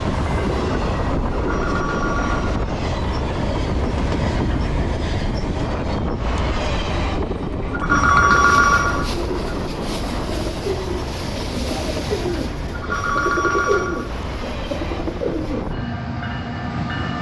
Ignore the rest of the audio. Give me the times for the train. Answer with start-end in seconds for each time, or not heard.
0.0-17.1.